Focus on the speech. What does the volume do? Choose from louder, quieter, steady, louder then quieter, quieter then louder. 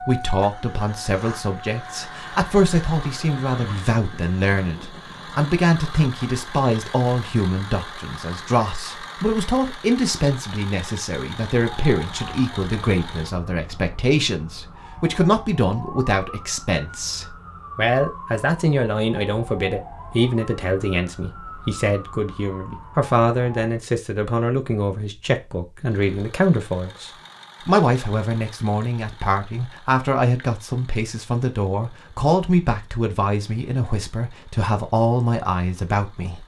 steady.